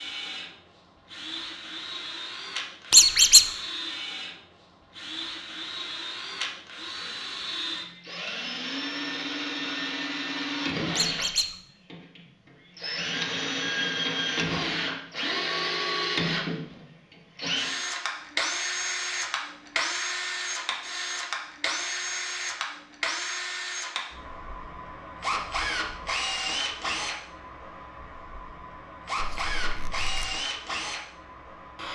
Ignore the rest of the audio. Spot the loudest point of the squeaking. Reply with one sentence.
The volume of the squeaking peaks at 3 seconds.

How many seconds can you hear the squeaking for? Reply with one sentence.
The squeaking can be heard for 2 seconds in total.